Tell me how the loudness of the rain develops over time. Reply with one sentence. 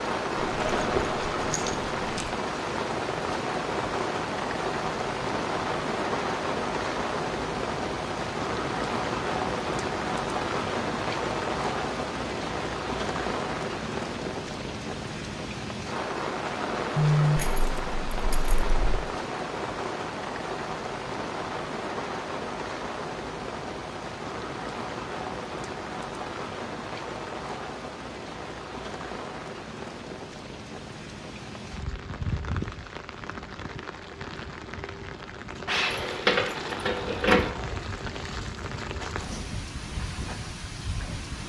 The loudness of the rain goes down.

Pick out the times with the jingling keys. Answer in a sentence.
The jingling keys can be heard from 0.3 to 2.3 s, from 16.9 to 19.0 s and from 35.6 to 37.5 s.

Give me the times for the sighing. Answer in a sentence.
The sighing can't be heard in this clip.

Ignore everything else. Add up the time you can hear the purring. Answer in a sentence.
You can't hear the purring here.